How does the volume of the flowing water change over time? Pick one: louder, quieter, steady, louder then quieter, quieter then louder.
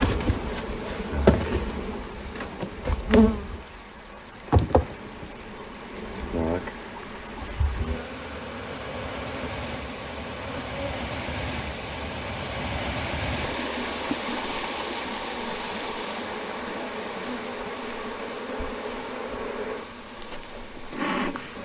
louder then quieter.